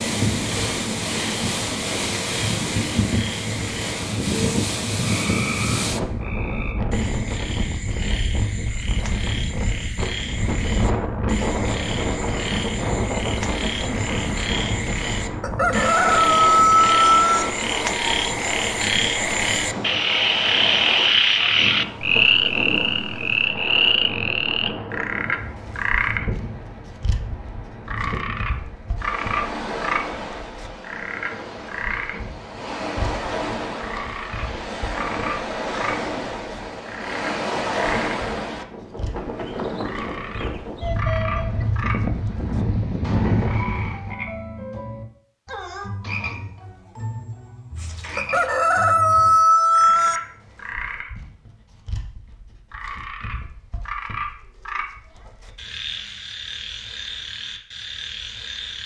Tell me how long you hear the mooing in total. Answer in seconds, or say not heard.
not heard.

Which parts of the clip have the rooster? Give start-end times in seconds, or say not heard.
15.4-17.4, 48.1-50.2.